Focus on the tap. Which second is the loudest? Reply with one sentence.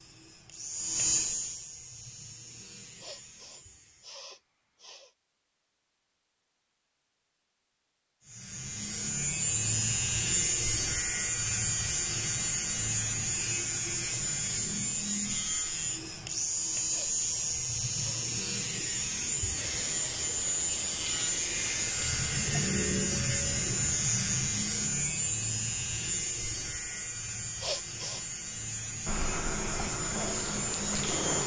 The loudest moment of the tap is at 31 seconds.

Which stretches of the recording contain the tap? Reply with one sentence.
You can hear the tap from 19.6 to 22.6 s and from 29.1 to 31.4 s.